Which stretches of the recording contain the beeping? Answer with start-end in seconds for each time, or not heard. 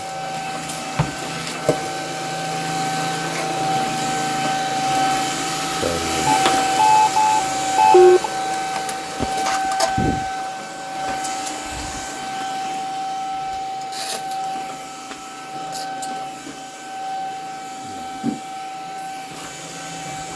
6.2-8.3.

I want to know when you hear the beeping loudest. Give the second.
8 s.